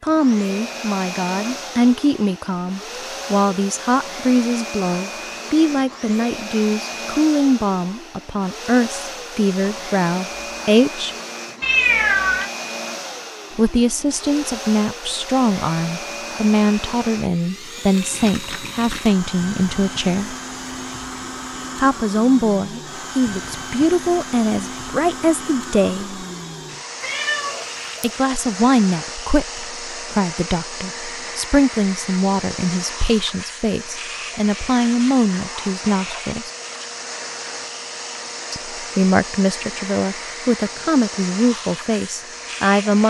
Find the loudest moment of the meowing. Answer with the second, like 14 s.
12 s.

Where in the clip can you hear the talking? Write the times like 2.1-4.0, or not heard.
0.0-11.2, 13.6-20.4, 21.8-26.2, 28.0-36.5, 38.5-43.0.